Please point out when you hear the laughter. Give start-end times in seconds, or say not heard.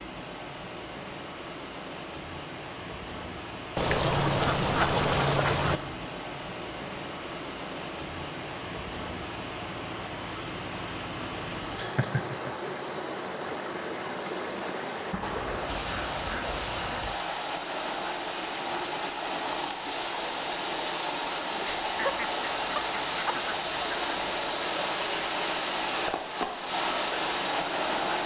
11.8-12.5, 21.6-23.4.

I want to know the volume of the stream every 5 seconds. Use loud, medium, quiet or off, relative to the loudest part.
medium, medium, medium, loud, loud, loud.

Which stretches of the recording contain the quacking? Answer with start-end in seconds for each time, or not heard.
3.8-5.8, 15.1-17.1, 22.0-24.4.